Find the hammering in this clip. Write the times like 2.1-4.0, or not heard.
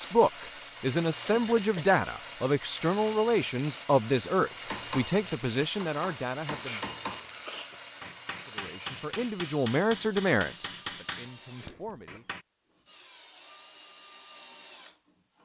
4.5-12.4.